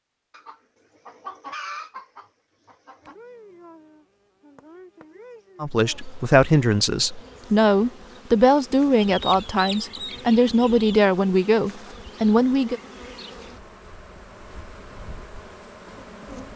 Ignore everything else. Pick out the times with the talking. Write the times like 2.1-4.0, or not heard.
5.6-12.8.